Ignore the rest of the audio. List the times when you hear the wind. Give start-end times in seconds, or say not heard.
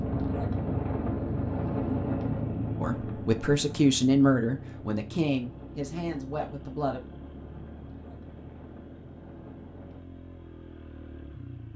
0.0-10.0.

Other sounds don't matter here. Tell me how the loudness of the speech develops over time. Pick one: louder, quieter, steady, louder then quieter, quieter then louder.
quieter.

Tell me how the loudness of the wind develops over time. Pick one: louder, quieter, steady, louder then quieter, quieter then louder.
quieter.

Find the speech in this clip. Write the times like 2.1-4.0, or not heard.
2.8-7.0.